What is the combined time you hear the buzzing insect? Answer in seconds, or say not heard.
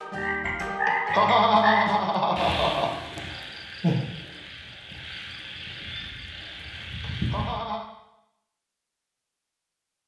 not heard.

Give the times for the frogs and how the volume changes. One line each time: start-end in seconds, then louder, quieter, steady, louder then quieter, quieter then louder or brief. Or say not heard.
0.0-7.6 quieter.